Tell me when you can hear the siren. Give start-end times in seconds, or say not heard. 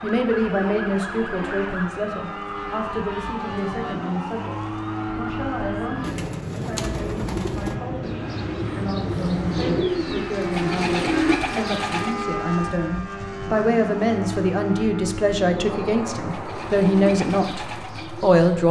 0.0-6.2.